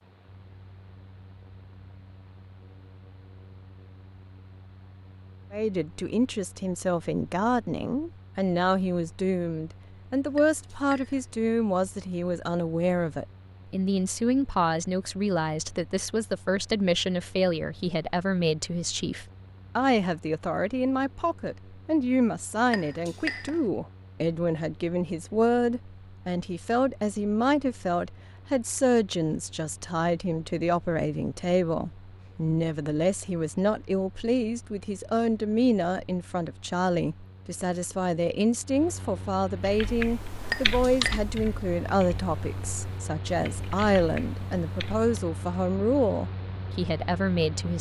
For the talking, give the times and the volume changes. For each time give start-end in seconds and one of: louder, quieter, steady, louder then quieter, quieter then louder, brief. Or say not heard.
5.5-47.7 steady.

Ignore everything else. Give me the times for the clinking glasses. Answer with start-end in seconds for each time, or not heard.
10.3-11.3, 22.6-23.6, 40.4-41.2.